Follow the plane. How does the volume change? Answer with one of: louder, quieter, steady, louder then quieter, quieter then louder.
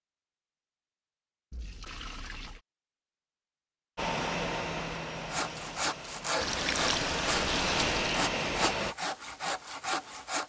quieter then louder.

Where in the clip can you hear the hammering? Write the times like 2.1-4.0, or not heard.
not heard.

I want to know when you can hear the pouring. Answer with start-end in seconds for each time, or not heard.
1.5-2.6, 6.4-8.2.